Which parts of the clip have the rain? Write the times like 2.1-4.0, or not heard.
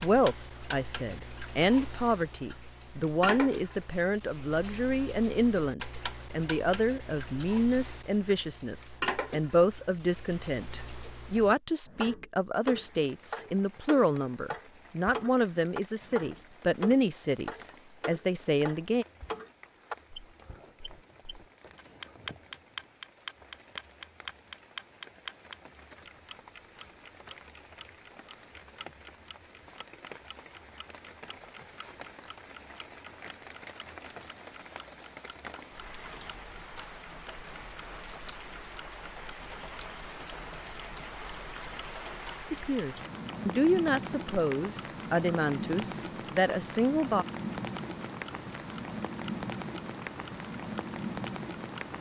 12.7-51.9.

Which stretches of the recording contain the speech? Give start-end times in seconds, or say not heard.
0.0-19.1, 42.5-47.2.